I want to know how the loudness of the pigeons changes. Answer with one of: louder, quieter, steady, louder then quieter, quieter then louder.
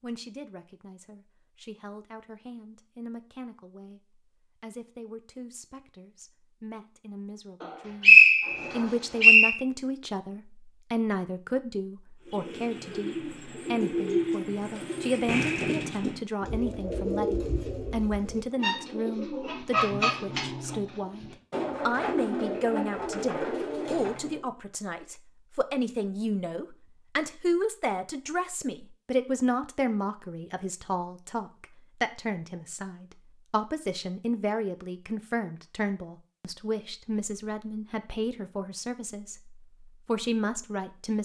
steady.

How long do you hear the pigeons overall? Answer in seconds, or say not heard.
12 s.